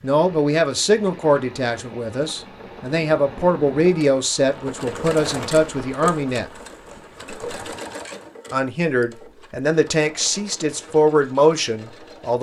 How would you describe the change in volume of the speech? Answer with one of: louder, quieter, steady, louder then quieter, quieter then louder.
steady.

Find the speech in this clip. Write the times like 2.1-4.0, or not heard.
0.0-6.5, 8.5-12.3.